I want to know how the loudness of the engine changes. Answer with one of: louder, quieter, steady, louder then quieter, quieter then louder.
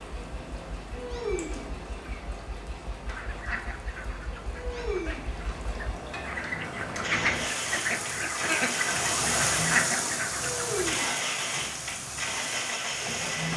louder.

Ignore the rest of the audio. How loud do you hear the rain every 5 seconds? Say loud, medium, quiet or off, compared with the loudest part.
medium, loud, loud.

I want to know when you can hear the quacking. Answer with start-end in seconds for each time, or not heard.
3.0-10.8.